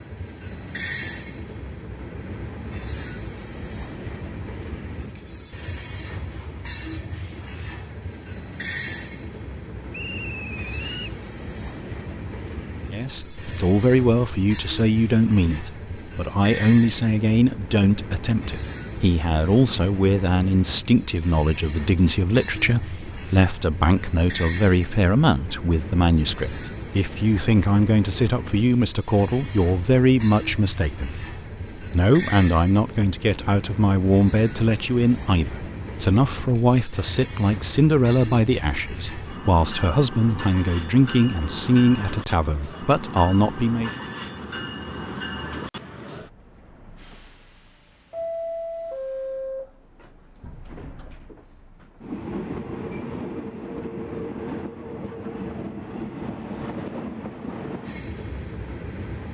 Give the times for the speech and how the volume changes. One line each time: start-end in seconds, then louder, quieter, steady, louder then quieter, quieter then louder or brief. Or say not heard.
12.9-44.0 steady.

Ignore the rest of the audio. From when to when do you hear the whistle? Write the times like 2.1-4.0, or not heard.
9.9-11.1.